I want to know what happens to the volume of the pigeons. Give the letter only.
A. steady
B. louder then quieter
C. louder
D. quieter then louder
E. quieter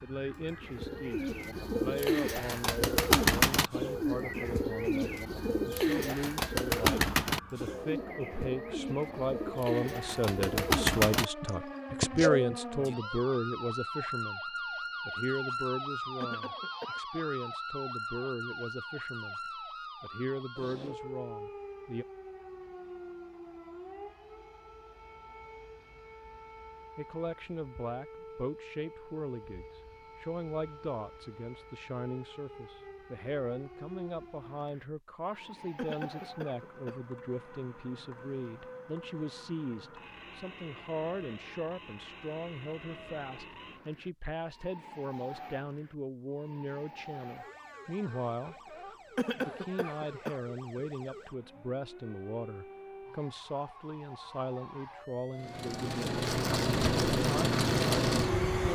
D.